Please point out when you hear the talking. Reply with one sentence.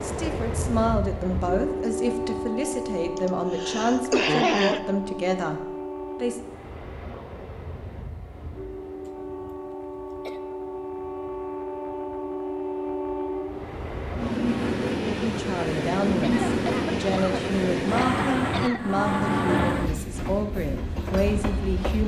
You can hear the talking from 0.0 to 6.4 s and from 15.0 to 22.0 s.